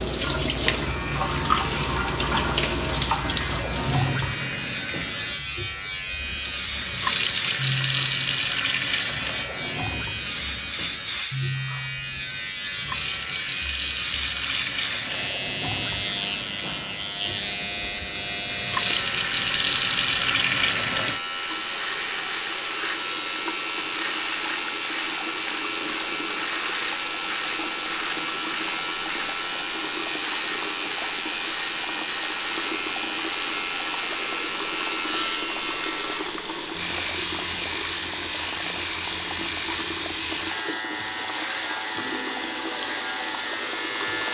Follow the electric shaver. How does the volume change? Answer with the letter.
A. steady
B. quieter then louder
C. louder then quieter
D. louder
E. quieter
A.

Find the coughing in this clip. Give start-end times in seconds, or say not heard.
not heard.